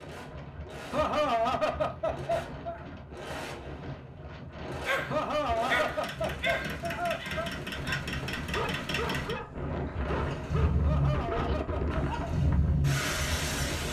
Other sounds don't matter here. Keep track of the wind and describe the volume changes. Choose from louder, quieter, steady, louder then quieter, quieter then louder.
louder.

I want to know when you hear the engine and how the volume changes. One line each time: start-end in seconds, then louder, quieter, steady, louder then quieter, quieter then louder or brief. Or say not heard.
0.0-13.8 louder.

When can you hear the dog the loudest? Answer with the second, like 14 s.
6 s.